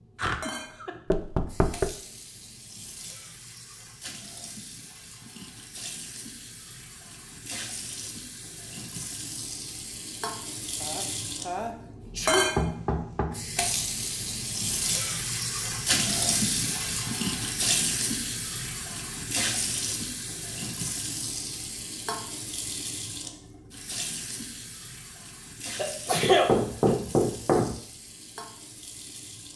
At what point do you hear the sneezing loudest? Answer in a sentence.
The loudest moment of the sneezing is at 26 seconds.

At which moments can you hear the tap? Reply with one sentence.
You can hear the tap from 0.0 to 29.5 s.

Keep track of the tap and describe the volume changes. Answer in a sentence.
The volume of the tap goes up, then down.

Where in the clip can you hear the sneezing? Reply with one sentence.
You can hear the sneezing from 0.1 to 0.9 s, from 10.8 to 12.5 s and from 25.8 to 26.5 s.